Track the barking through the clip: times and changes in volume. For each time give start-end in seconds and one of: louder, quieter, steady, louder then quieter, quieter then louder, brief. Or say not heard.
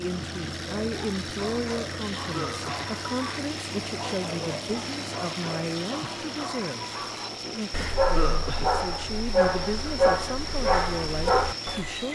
0.7-12.0 louder.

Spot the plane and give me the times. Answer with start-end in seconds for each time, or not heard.
0.0-12.1.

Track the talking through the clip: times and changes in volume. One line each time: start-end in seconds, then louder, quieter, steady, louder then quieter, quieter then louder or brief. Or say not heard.
0.0-12.1 steady.